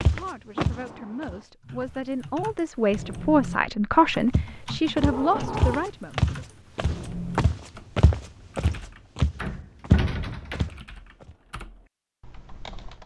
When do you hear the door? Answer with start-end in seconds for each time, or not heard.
0.6-1.4, 5.0-5.9, 9.4-10.8.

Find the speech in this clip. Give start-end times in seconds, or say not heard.
0.0-6.3.